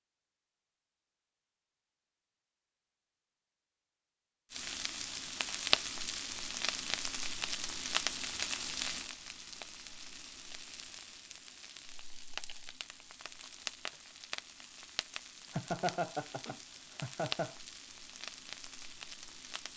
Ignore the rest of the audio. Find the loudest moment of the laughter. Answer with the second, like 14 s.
16 s.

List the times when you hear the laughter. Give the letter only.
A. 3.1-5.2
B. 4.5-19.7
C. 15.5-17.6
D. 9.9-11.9
C.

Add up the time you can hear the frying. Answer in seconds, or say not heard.
15 s.